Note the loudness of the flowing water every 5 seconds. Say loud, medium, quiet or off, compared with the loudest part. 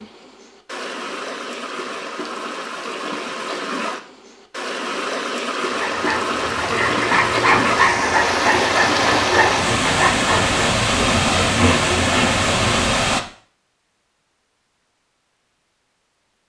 medium, loud, loud, off.